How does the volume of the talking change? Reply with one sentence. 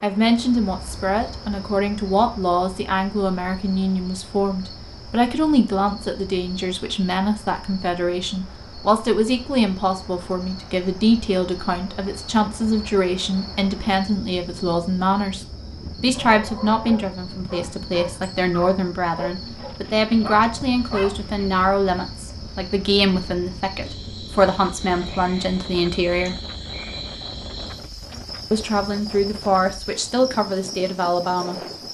The volume of the talking stays about the same.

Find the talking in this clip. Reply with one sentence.
The talking can be heard from 0.0 to 26.4 s and from 28.5 to 31.6 s.